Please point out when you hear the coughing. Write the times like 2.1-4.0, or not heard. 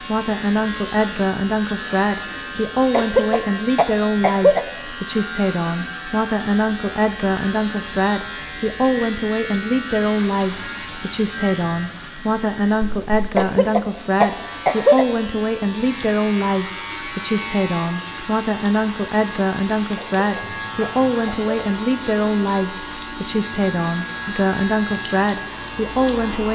2.9-4.7, 13.3-15.1, 19.9-21.6.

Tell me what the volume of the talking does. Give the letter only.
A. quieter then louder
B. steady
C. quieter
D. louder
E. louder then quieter
B.